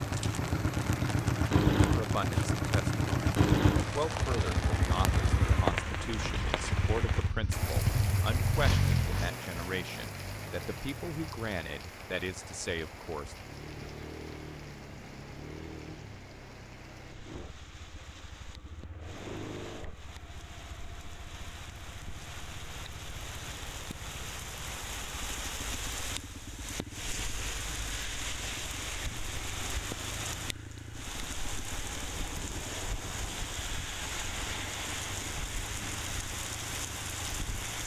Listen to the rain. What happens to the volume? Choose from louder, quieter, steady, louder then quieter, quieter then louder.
quieter then louder.